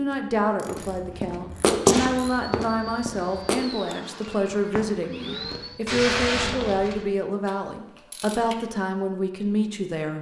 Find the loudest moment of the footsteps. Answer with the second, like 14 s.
2 s.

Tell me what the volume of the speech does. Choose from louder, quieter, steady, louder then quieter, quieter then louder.
steady.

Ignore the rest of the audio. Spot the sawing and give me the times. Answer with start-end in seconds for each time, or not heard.
not heard.